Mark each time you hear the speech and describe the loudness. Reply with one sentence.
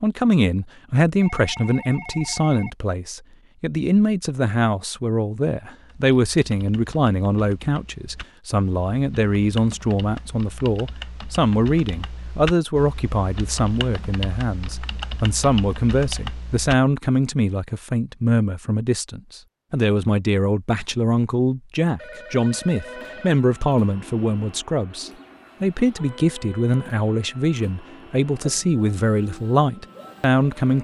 You can hear the speech from 0.0 to 30.7 s, at a steady volume.